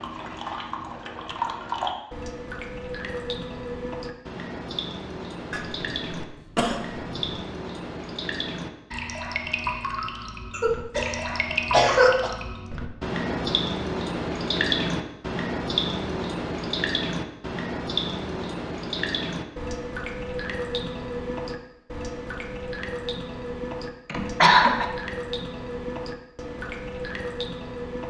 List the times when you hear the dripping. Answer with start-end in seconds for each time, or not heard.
0.0-28.0.